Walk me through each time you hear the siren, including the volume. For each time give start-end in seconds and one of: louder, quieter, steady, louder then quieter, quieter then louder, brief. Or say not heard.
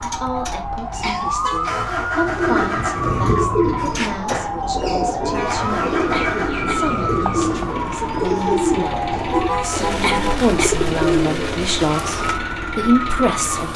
0.0-13.7 steady.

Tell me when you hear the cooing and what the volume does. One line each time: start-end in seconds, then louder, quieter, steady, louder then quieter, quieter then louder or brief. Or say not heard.
2.4-12.4 steady.